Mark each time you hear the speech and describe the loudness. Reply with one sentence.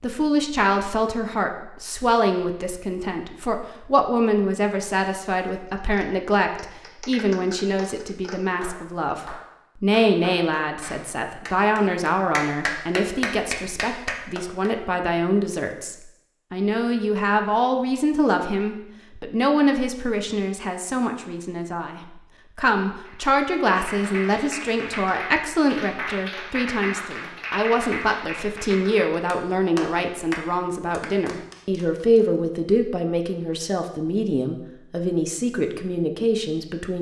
The speech can be heard from 0.0 to 36.9 s, at a steady volume.